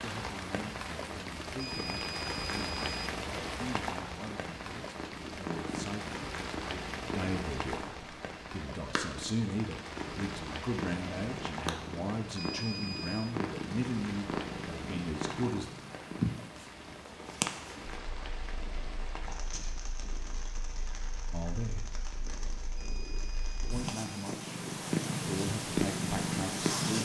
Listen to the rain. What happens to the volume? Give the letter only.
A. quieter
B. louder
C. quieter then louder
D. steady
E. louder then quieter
A.